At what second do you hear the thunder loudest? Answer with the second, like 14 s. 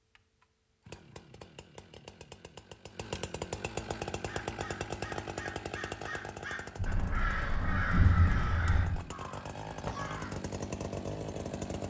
8 s.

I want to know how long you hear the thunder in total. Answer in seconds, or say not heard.
2 s.